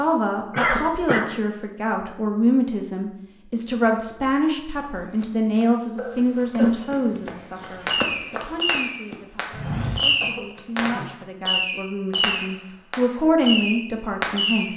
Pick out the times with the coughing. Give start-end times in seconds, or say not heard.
0.5-1.2, 6.0-6.8, 10.2-11.2.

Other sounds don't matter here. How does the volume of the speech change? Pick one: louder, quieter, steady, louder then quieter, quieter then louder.
quieter then louder.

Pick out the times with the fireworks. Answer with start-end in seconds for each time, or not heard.
7.8-14.7.